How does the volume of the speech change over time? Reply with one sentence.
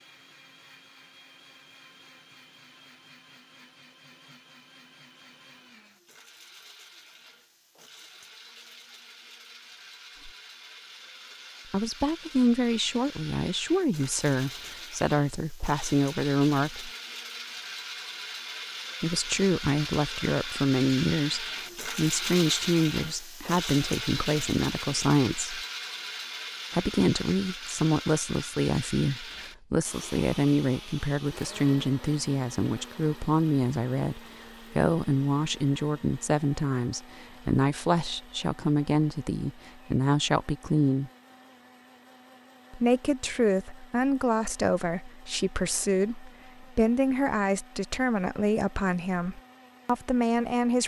The volume of the speech stays about the same.